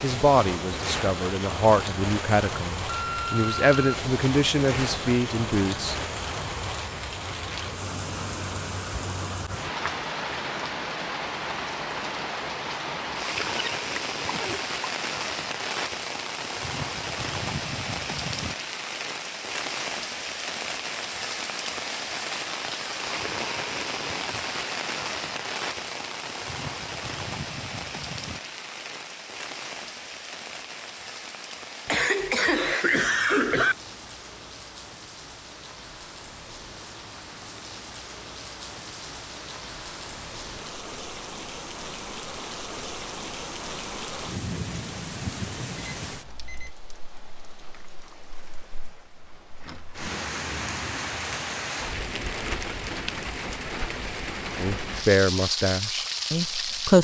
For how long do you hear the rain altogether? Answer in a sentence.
The rain can be heard for 57 seconds in total.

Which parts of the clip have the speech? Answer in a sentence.
You can hear the speech from 0.0 to 6.0 s and from 54.5 to 56.9 s.